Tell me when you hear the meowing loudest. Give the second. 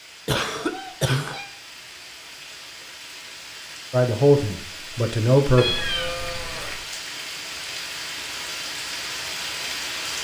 6 s.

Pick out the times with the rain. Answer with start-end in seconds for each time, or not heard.
0.0-10.1.